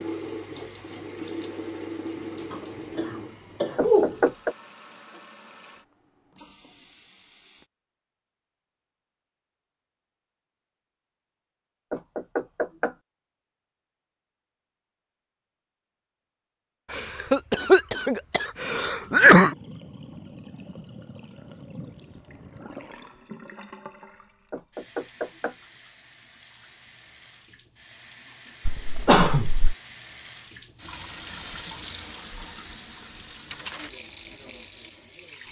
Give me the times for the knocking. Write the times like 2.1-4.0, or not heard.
3.8-4.5, 11.9-12.9, 24.5-25.6.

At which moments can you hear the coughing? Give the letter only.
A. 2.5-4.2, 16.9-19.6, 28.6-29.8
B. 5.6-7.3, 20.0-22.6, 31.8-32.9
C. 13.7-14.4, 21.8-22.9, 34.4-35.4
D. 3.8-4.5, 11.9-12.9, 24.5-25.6
A.